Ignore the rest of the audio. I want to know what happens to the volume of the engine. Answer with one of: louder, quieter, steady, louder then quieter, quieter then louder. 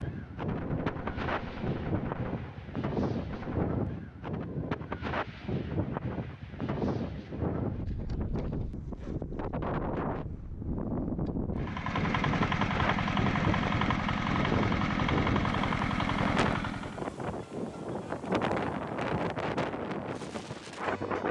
steady.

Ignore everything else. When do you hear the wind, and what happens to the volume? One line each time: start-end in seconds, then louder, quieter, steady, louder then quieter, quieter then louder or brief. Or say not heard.
0.0-21.2 steady.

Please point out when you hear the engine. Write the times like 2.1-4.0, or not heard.
11.6-17.1.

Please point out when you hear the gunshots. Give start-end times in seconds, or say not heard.
0.5-3.7.